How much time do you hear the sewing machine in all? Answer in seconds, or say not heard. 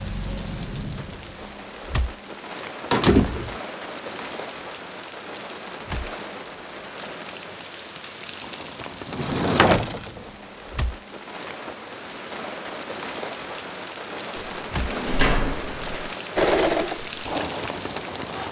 2 s.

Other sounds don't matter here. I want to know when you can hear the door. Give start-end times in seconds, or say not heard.
2.9-3.5, 9.1-10.2, 14.3-16.1.